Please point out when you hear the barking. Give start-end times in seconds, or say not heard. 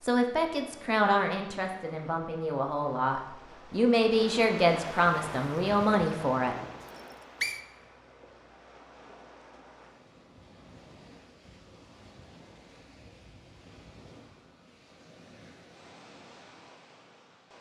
not heard.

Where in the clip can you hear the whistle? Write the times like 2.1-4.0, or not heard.
6.8-7.6.